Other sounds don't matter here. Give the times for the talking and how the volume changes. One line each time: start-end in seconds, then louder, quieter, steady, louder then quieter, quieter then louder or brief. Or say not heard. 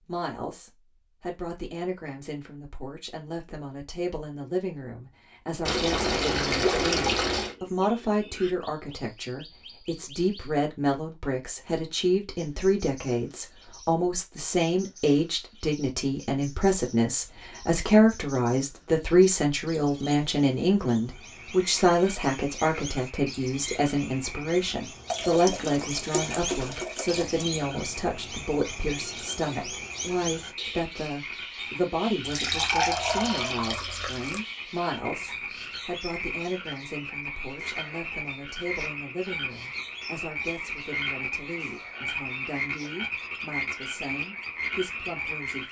0.1-45.6 louder then quieter.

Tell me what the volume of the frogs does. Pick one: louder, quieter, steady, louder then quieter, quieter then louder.
louder.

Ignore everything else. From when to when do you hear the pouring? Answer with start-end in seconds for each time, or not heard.
5.7-7.5, 25.1-27.4, 32.2-34.4.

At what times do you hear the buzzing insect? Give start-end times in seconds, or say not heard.
not heard.